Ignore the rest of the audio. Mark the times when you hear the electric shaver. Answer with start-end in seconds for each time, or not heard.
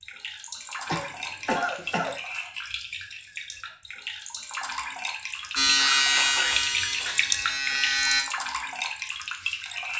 5.5-8.2.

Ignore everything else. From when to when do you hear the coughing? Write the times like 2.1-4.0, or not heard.
0.8-2.1, 5.4-7.2.